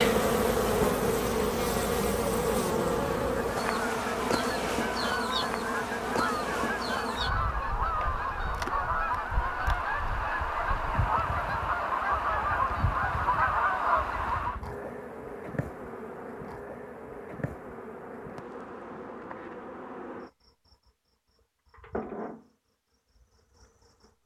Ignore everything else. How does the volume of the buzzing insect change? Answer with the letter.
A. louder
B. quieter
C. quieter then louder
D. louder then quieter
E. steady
B.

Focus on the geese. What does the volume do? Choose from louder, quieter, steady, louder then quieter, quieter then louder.
louder.